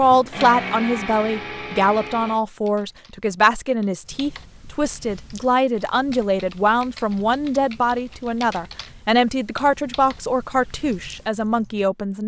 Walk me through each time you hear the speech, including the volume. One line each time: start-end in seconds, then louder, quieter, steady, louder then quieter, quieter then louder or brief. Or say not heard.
0.0-12.2 steady.